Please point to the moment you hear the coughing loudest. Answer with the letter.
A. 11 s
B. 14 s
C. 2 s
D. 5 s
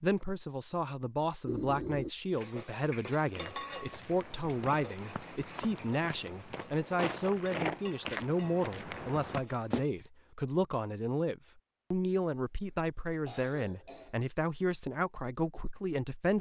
C.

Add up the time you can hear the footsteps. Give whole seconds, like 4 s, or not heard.
7 s.